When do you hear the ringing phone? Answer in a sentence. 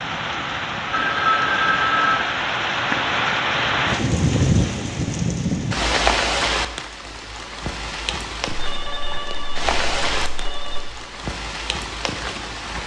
The ringing phone can be heard from 0.9 to 2.3 s and from 8.4 to 10.8 s.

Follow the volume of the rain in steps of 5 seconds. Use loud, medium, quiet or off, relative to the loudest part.
loud, loud, medium.